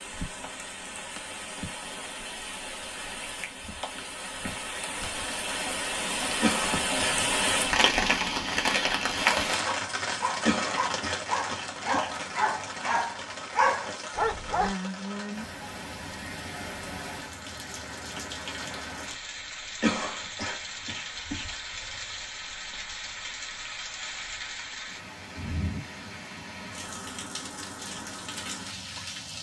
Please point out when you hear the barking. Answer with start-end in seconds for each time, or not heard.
9.6-14.8.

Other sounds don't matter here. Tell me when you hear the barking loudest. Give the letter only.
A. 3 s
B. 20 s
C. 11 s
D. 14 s
D.